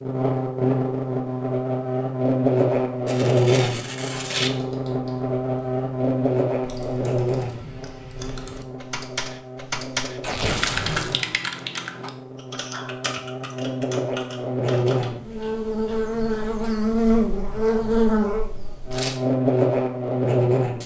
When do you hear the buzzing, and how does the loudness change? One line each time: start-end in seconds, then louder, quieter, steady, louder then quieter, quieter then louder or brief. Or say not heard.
0.0-20.8 quieter then louder.